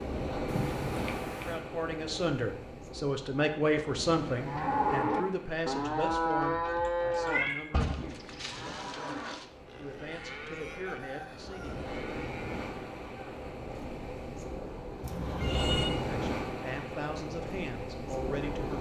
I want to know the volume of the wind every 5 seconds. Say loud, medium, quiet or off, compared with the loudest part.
loud, quiet, medium, loud.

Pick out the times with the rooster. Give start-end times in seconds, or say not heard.
10.6-11.8.